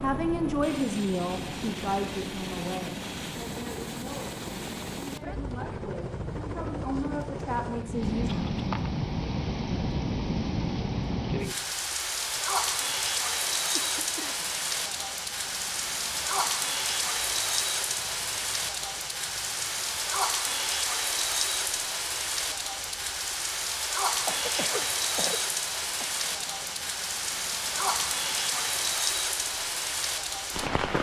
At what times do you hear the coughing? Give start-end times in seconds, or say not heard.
8.2-8.7, 13.8-14.5, 24.2-26.1.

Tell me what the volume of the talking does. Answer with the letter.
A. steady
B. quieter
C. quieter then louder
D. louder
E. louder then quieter
C.